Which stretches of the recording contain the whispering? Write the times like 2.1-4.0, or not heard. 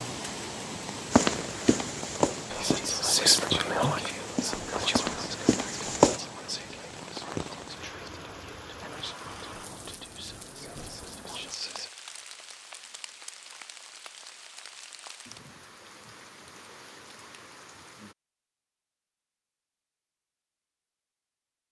2.5-11.9.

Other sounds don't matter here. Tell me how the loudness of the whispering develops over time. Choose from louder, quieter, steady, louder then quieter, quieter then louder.
quieter.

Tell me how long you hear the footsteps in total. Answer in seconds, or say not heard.
5 s.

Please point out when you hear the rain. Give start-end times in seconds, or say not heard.
0.0-18.1.